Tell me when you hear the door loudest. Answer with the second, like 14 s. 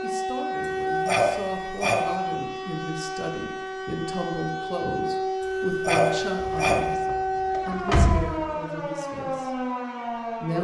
8 s.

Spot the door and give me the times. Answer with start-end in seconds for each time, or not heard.
6.5-8.2.